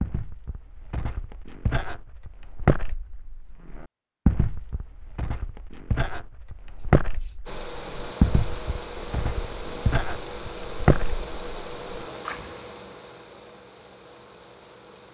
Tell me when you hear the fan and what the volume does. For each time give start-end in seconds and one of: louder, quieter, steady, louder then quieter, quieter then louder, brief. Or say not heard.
7.5-15.1 quieter.